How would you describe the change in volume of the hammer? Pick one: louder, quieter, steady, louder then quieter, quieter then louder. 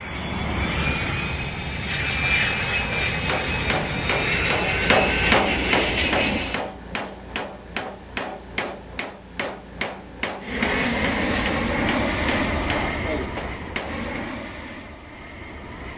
quieter.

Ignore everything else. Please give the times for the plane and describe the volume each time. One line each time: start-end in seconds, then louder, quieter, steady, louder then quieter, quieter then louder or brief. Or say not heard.
0.0-6.7 steady
10.4-15.9 quieter.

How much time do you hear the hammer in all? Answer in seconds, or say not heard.
11 s.